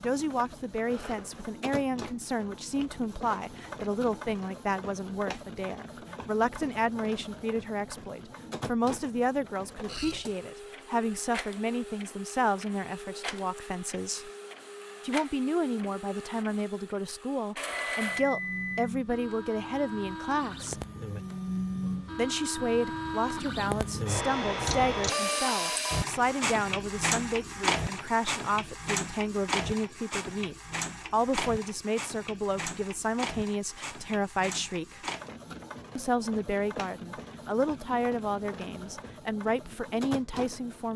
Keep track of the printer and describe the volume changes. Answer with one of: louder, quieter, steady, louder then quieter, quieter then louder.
louder then quieter.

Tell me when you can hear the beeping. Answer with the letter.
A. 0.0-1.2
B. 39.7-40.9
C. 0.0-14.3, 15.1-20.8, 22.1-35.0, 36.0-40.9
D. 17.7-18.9
D.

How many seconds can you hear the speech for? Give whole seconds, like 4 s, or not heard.
38 s.